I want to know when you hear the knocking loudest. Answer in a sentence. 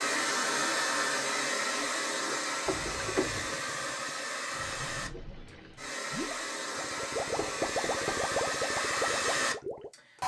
The volume of the knocking peaks at 3 seconds.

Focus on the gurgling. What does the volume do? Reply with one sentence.
The volume of the gurgling goes up.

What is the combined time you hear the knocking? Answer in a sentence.
The knocking can be heard for 2 seconds in total.